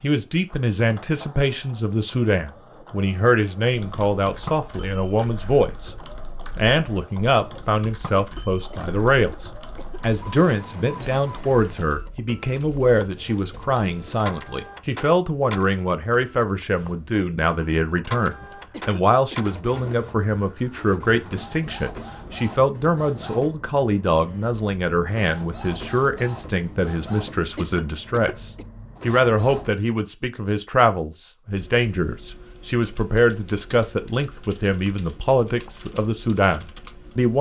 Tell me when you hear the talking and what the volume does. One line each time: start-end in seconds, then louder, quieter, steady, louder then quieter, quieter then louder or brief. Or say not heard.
0.0-6.0 steady
6.5-37.3 steady.